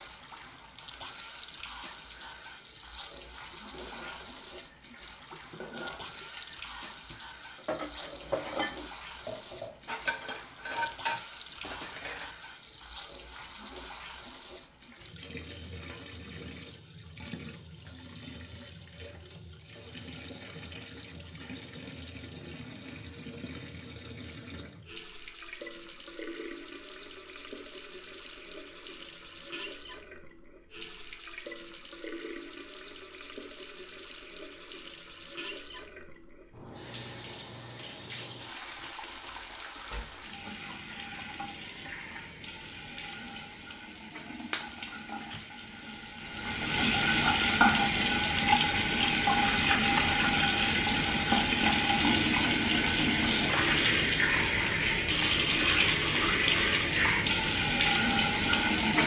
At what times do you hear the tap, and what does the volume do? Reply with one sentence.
You can hear the tap from 0.0 to 59.0 s, getting louder.